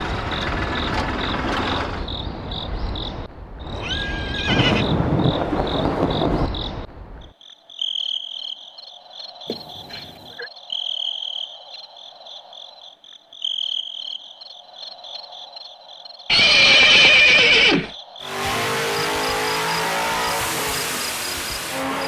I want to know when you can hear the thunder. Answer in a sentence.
You can hear the thunder from 4.5 to 6.5 s.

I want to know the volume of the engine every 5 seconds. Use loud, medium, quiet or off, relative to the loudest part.
loud, off, off, loud, loud.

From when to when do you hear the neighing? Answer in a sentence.
You can hear the neighing from 3.7 to 4.8 s, from 9.4 to 10.5 s and from 16.2 to 17.9 s.